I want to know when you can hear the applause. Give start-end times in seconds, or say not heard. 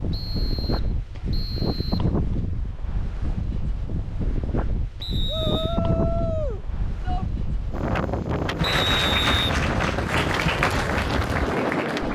8.6-12.0.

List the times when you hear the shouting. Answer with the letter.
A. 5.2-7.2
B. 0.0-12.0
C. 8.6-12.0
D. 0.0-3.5
A.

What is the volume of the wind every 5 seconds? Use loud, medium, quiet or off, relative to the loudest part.
medium, loud, loud.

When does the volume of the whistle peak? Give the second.
9 s.